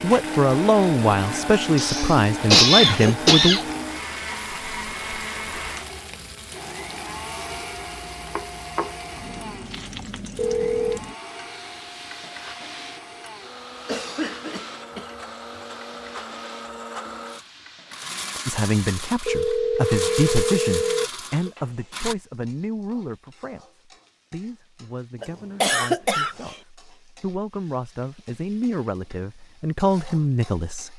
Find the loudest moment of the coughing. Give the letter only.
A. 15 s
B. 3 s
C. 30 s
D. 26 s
B.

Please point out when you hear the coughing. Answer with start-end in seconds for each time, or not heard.
1.8-3.7, 13.8-15.1, 25.2-26.4.